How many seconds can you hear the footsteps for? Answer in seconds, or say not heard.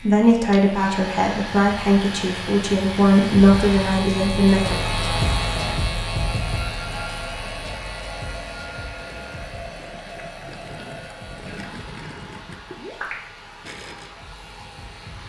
not heard.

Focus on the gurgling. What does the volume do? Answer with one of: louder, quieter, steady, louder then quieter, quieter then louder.
louder.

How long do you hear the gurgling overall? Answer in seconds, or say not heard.
5 s.